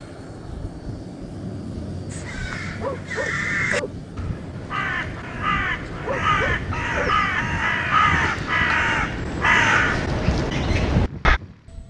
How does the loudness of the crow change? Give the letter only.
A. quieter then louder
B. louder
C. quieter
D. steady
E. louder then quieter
B.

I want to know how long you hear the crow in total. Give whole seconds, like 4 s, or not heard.
9 s.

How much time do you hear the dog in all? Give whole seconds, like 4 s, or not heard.
2 s.